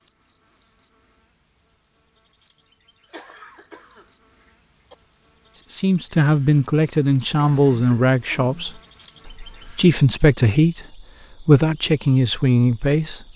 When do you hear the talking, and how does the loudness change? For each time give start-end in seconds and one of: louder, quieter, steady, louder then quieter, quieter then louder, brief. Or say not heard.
5.7-13.2 steady.